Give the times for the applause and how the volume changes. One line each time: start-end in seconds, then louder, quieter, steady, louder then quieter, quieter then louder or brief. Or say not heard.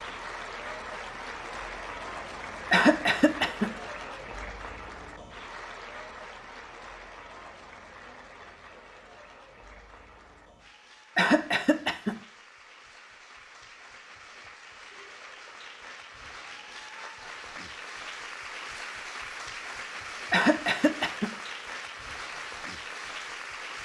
0.0-23.8 quieter then louder.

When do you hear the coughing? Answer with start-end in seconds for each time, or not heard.
2.7-3.7, 11.2-12.2, 20.3-21.3.